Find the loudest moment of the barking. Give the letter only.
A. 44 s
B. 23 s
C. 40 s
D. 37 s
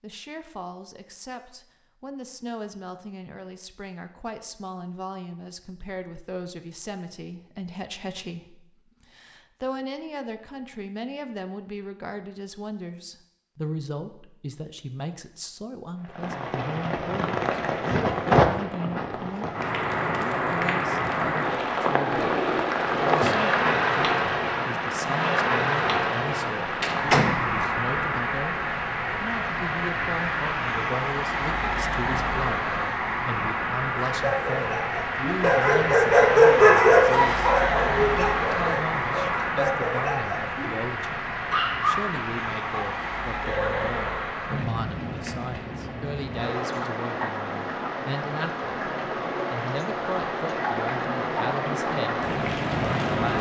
D.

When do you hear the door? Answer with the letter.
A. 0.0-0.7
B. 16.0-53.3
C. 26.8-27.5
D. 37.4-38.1
C.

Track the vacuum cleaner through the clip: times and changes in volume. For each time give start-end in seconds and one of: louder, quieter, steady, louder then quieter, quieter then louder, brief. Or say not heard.
not heard.